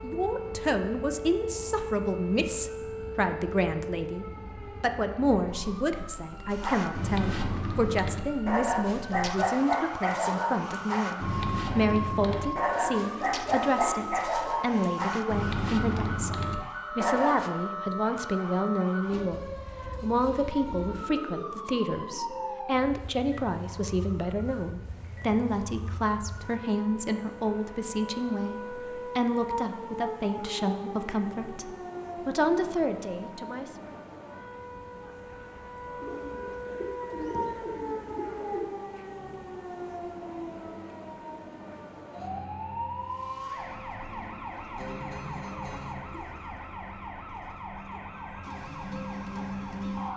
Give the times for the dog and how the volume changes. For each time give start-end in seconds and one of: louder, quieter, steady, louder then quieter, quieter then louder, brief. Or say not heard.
6.5-17.5 steady.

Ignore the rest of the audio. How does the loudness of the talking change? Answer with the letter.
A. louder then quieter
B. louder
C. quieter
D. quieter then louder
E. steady
E.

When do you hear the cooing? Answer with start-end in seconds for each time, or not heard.
12.6-14.2, 20.8-22.4, 36.0-38.7.